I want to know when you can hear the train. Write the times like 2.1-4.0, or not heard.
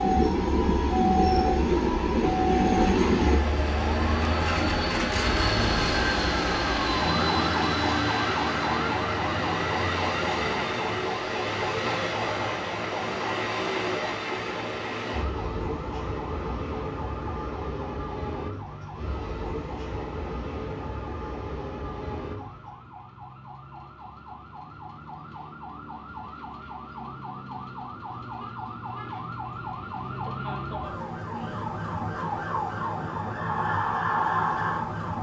0.0-22.8.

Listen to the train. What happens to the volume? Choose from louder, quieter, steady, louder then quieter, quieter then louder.
quieter.